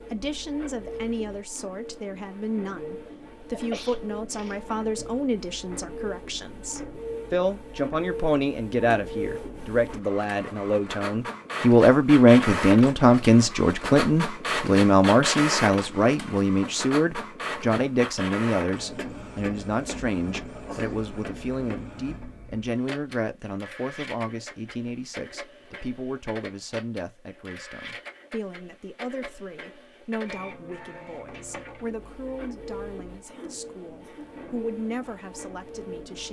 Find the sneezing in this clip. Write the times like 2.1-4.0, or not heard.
3.5-4.6, 20.6-21.1, 33.2-34.3.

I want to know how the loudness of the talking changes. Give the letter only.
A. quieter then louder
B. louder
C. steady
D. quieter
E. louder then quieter
E.